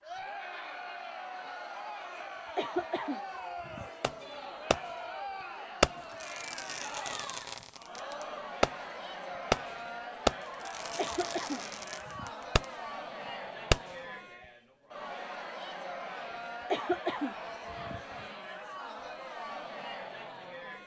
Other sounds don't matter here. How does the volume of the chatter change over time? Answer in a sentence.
The volume of the chatter stays about the same.